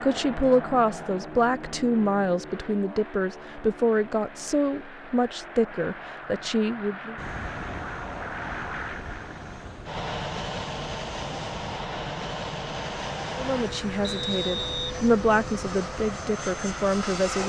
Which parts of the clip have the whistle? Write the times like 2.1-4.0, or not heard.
14.0-14.9.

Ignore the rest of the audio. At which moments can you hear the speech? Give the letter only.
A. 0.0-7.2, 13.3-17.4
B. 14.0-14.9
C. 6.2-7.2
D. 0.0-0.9
A.